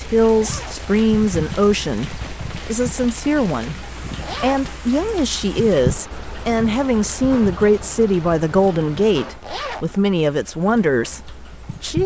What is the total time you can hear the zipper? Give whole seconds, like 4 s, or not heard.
2 s.